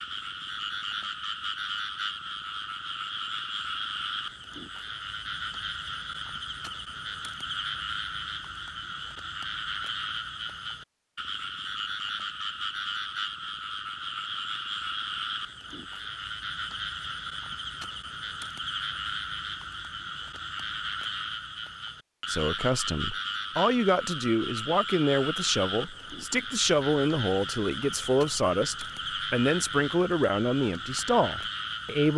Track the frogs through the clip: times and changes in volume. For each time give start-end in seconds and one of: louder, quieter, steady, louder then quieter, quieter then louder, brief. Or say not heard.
0.0-32.1 steady.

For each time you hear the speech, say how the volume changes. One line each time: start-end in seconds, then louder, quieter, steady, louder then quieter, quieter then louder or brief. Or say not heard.
22.2-32.1 steady.